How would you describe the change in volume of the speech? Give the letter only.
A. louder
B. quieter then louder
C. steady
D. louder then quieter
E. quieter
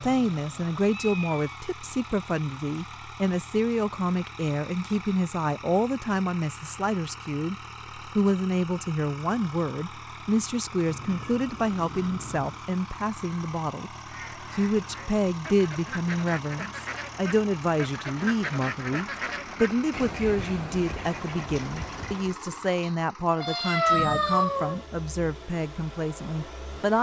C.